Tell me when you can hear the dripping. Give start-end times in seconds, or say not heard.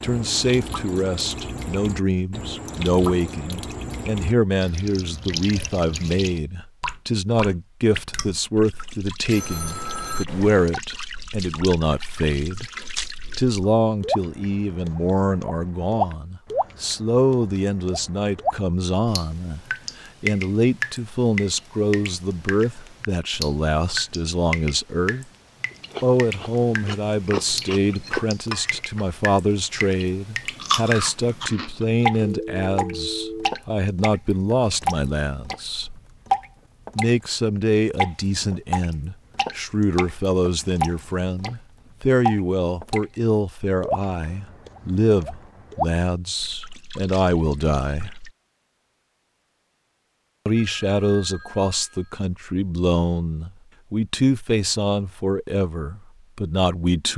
0.0-37.1, 38.0-43.0, 43.8-48.3.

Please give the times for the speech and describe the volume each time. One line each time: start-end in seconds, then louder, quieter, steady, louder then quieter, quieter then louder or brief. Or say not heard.
0.0-12.7 steady
13.3-25.2 steady
26.0-36.0 steady
37.0-48.1 steady
50.5-57.1 steady.